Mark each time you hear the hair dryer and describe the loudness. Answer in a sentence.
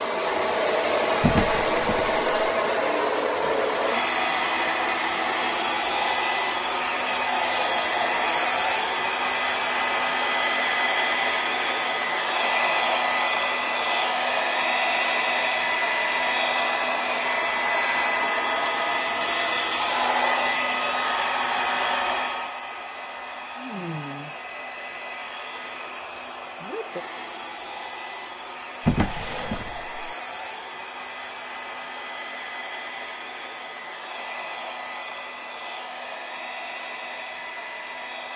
You can hear the hair dryer from 0.0 to 38.3 s, getting quieter.